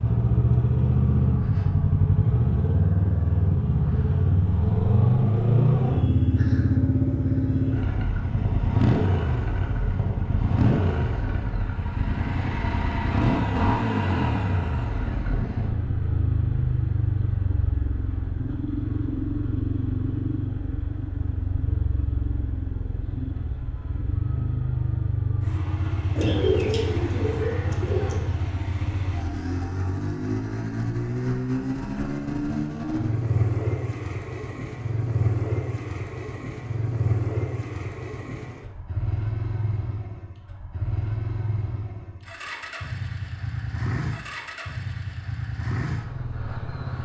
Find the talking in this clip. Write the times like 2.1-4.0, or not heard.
not heard.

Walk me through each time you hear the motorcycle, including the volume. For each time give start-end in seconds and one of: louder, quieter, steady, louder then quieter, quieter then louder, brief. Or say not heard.
0.0-47.0 quieter.